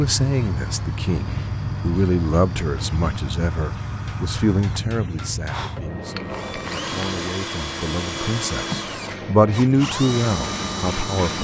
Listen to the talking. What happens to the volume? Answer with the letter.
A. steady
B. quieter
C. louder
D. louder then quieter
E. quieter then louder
E.